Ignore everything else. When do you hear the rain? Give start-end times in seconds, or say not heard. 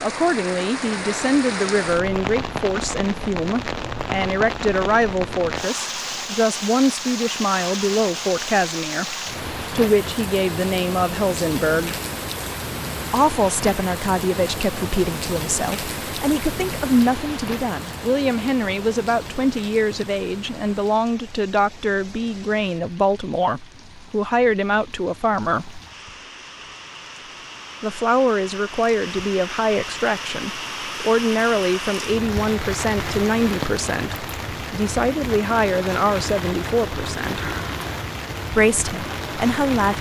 0.0-39.9.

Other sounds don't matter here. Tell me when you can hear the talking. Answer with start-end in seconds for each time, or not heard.
0.0-12.0, 13.1-25.8, 27.8-37.5, 38.5-39.9.